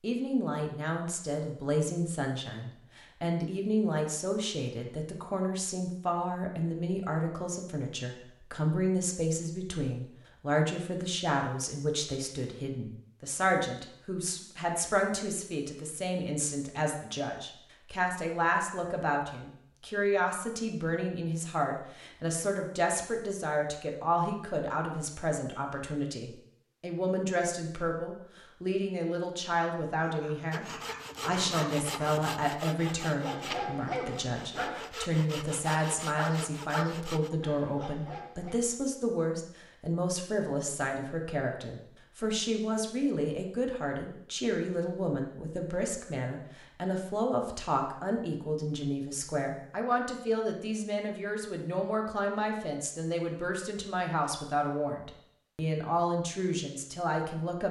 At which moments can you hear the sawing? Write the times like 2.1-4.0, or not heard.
30.5-37.3.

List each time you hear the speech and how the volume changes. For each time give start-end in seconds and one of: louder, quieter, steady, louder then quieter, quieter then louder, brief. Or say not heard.
0.0-57.6 steady.